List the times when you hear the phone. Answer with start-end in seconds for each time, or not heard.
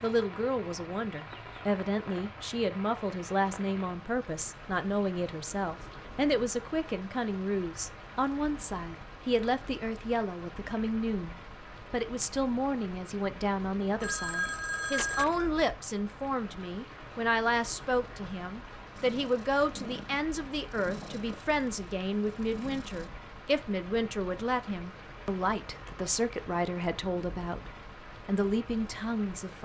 14.0-15.6.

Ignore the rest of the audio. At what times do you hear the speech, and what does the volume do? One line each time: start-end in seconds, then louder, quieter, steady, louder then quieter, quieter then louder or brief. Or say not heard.
0.0-29.6 steady.